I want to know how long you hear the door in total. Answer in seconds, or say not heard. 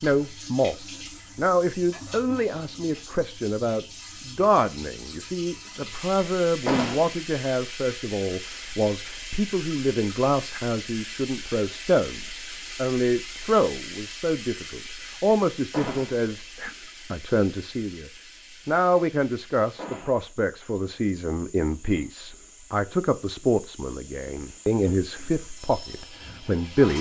2 s.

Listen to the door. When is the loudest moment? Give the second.
7 s.